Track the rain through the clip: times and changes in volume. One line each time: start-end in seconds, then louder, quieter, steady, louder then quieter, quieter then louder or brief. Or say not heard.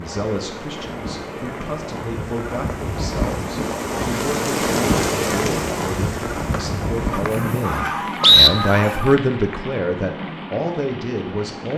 0.0-11.7 louder then quieter.